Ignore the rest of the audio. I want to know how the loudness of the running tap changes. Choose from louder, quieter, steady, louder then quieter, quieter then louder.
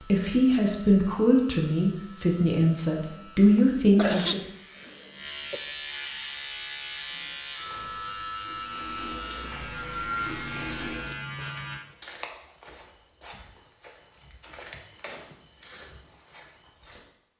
louder.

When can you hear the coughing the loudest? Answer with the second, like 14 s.
4 s.